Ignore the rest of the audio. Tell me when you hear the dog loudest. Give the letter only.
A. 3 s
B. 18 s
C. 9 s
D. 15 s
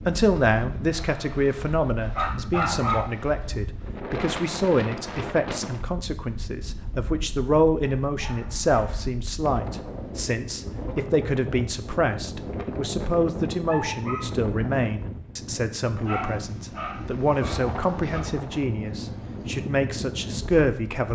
A.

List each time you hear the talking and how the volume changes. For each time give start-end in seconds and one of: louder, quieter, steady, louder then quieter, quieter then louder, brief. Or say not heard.
0.1-21.1 steady.